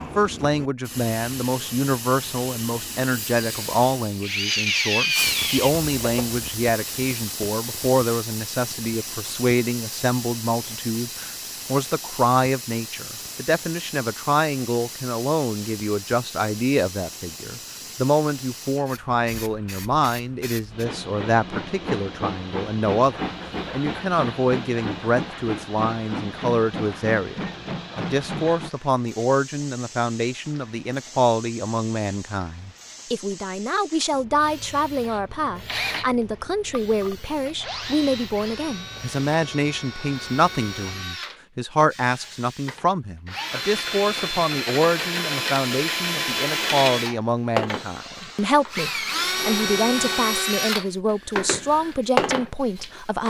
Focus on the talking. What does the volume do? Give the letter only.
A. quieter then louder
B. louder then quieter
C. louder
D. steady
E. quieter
D.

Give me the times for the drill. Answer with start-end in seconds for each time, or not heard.
4.2-6.4, 35.0-53.2.